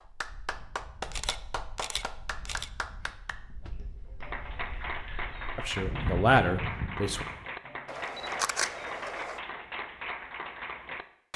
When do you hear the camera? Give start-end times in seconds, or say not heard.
1.1-2.7, 7.8-9.4.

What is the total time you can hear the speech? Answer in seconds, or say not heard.
2 s.